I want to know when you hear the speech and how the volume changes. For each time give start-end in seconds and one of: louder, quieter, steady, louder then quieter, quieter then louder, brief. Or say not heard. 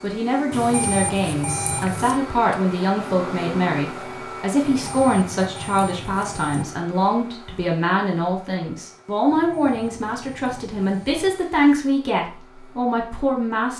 0.0-13.7 steady.